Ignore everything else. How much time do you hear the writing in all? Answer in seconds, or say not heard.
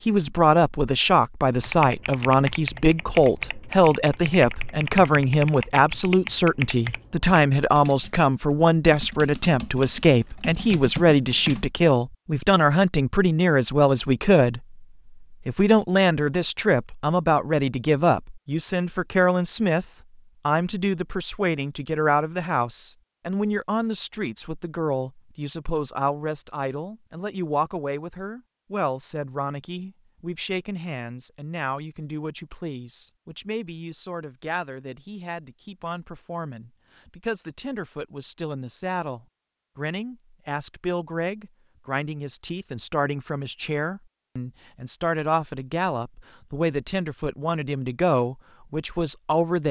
not heard.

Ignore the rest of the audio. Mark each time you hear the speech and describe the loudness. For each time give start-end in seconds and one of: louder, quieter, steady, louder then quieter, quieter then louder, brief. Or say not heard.
0.1-19.9 steady
20.4-49.6 quieter then louder.